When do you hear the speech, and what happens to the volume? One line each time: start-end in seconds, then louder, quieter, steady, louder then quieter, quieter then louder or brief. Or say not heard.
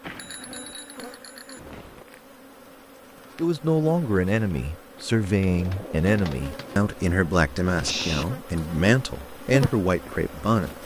3.4-10.7 steady.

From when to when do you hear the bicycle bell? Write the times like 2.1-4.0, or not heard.
0.0-2.0.